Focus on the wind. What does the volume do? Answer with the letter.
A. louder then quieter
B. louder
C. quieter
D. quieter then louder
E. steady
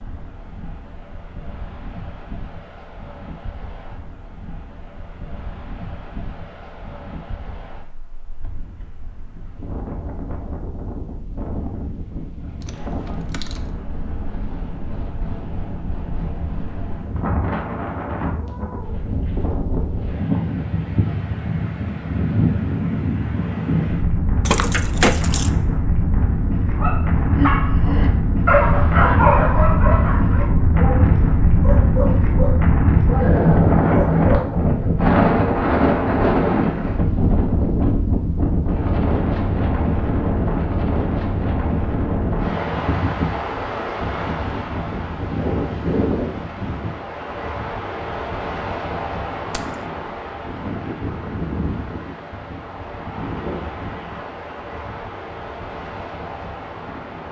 A.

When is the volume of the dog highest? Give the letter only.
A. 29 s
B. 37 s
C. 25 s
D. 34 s
A.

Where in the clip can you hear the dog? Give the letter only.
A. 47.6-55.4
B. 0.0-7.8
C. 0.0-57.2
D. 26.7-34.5
D.